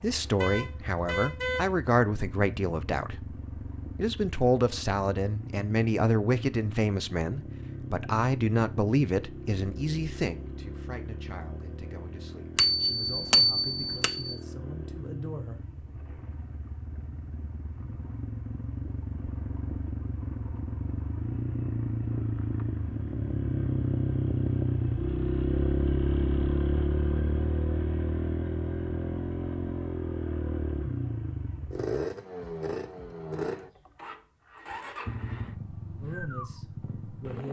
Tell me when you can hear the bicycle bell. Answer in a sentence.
The bicycle bell can be heard from 12.6 to 14.3 s.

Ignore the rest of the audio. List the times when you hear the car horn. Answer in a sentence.
You can hear the car horn from 0.3 to 1.7 s.